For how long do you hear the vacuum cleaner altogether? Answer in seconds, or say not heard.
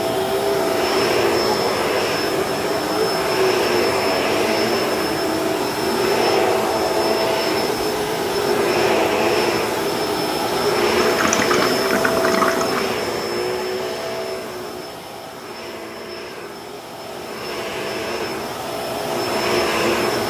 20 s.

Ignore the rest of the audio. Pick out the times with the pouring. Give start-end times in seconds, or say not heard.
11.0-12.9.